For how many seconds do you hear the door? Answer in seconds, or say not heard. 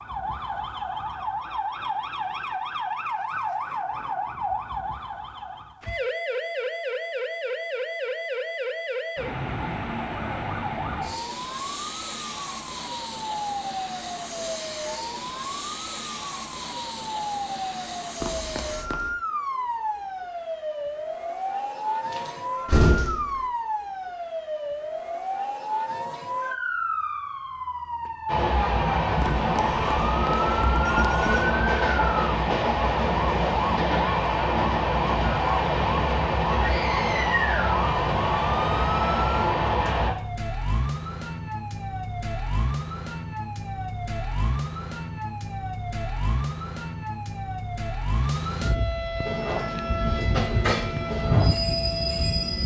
2 s.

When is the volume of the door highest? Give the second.
23 s.